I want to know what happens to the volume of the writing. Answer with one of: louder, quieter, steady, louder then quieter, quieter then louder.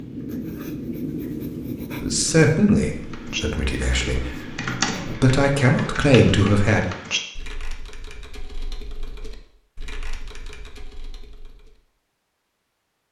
quieter.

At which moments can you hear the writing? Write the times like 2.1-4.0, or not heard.
0.0-5.2.